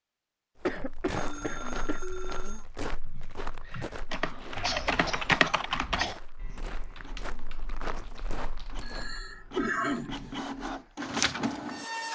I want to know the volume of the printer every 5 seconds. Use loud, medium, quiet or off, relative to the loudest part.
off, quiet, loud.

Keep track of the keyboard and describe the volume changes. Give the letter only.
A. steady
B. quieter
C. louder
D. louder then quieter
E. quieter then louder
D.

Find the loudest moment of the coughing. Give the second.
10 s.